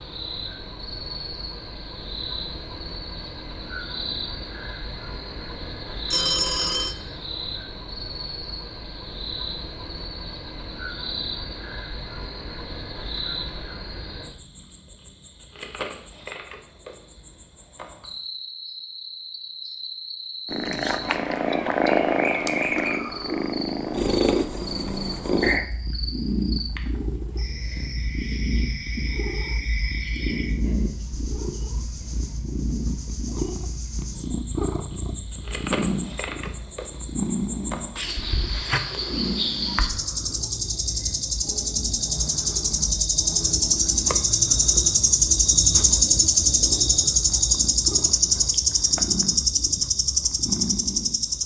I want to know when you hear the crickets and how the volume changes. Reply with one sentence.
You can hear the crickets from 0.0 to 51.4 s, getting louder.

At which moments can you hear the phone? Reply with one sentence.
The phone can be heard from 6.1 to 7.0 s.